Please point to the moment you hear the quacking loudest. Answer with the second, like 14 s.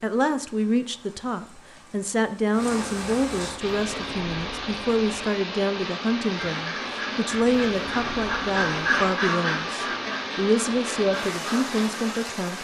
9 s.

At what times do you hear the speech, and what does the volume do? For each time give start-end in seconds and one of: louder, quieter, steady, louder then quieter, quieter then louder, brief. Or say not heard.
0.0-12.5 steady.